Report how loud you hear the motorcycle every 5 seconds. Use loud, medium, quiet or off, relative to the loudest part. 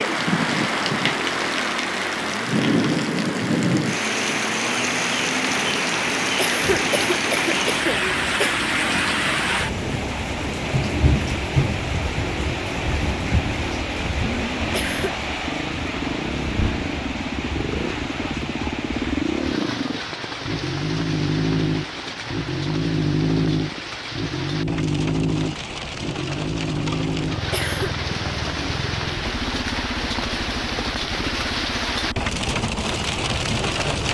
medium, medium, medium, loud, loud, loud, medium.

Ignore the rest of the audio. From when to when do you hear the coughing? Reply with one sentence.
You can hear the coughing from 6.3 to 8.6 s, from 14.7 to 15.1 s and from 27.5 to 27.9 s.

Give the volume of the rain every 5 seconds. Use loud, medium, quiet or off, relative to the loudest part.
loud, loud, loud, medium, medium, medium, loud.